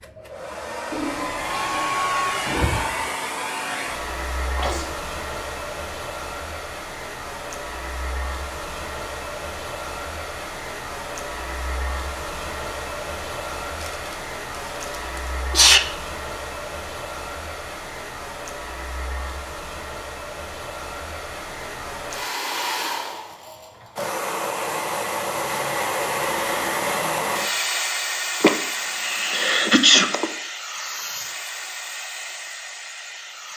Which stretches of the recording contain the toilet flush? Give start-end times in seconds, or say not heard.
0.9-3.0.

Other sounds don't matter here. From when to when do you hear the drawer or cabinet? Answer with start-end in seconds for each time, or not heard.
not heard.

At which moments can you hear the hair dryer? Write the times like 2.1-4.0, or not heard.
0.0-33.5.